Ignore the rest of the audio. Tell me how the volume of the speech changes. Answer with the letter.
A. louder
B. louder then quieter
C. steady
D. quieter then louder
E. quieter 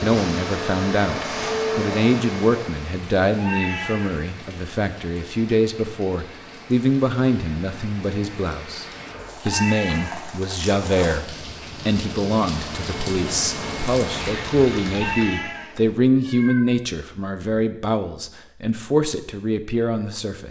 C.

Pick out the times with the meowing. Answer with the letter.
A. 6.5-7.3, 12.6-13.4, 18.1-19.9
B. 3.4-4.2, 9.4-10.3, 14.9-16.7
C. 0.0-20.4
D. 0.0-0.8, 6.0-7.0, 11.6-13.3
B.